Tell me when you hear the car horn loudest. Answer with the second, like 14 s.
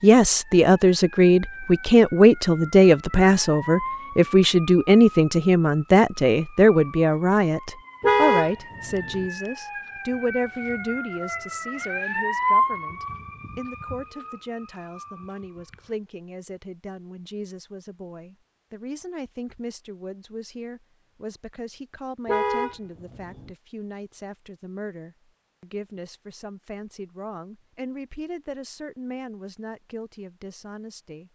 8 s.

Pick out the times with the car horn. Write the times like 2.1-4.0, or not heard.
8.0-9.2, 22.2-23.5.